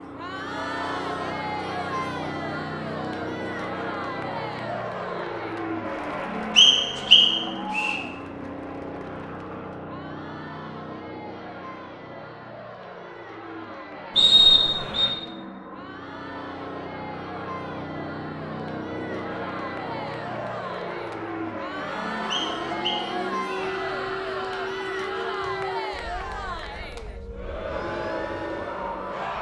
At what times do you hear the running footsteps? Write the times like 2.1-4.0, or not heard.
not heard.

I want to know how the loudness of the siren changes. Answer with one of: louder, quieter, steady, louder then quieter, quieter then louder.
quieter then louder.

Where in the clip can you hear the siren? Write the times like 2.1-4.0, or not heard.
22.4-29.3.